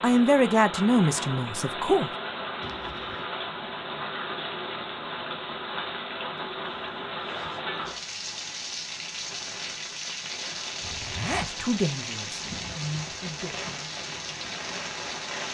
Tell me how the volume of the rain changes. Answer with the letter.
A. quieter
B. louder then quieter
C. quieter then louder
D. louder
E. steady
E.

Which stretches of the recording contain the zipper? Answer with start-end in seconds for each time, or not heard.
2.6-3.2, 6.3-8.0, 10.8-11.6.